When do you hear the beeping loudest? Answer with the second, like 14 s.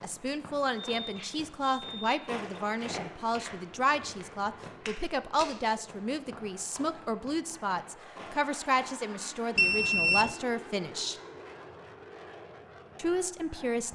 10 s.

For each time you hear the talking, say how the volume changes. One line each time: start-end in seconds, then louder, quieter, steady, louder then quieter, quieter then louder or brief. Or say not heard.
0.0-11.2 steady
12.9-13.9 brief.